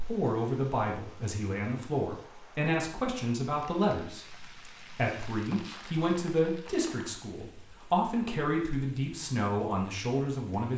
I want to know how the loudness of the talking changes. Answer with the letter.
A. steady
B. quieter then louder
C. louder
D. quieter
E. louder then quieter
A.